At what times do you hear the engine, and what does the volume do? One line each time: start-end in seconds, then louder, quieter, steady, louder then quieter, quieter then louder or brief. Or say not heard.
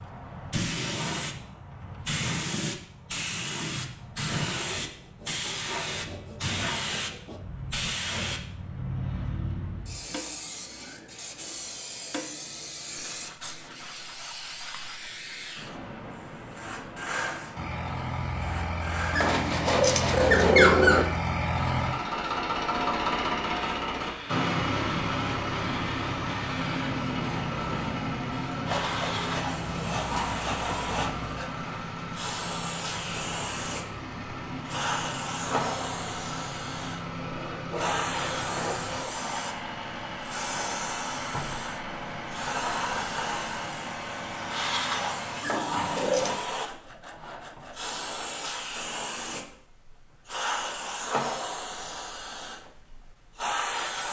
17.6-45.5 quieter.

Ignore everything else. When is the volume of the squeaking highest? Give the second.
21 s.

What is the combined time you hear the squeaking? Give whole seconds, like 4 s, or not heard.
3 s.